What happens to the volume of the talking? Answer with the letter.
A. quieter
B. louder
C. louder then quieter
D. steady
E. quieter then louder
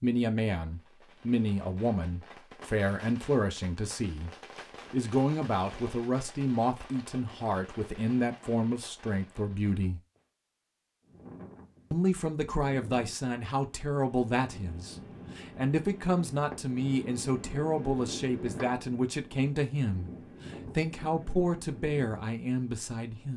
D.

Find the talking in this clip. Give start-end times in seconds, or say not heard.
0.0-4.3, 4.9-10.0, 11.9-23.3.